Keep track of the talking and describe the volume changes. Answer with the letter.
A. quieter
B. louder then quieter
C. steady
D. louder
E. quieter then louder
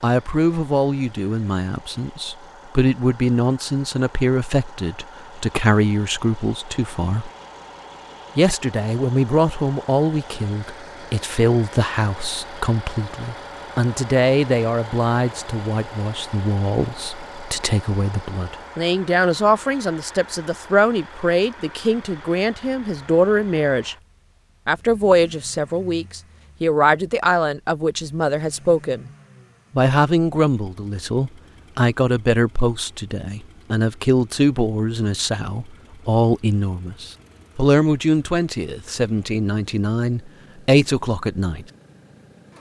C.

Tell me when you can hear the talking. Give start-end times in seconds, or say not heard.
0.0-7.3, 8.3-23.9, 24.6-29.1, 29.7-41.6.